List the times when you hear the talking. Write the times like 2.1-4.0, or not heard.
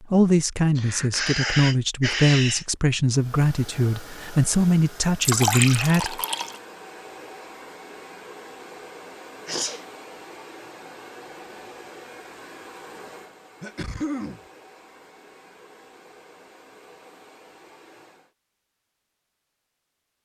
0.0-6.2.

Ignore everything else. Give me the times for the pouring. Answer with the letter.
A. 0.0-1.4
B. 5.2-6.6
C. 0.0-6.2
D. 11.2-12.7
B.